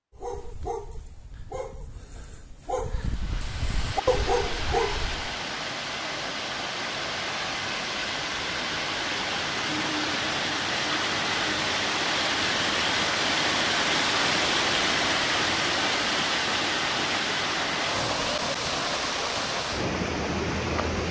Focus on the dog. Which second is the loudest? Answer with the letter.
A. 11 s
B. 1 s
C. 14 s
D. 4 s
D.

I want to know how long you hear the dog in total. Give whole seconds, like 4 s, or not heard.
5 s.